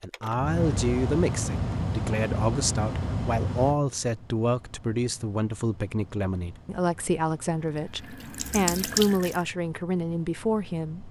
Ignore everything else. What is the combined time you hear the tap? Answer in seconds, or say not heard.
2 s.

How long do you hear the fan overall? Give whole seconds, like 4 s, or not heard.
11 s.